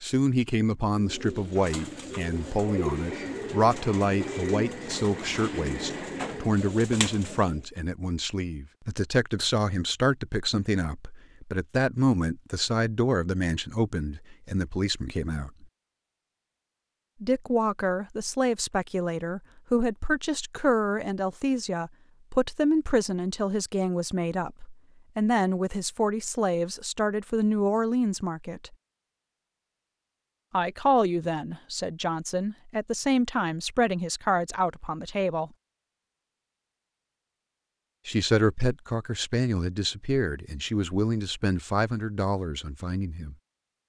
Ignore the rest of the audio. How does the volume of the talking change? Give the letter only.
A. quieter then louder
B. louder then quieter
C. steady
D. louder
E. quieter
C.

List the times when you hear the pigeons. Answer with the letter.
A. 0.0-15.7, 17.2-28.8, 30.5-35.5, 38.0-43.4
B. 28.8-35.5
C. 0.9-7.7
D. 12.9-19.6
C.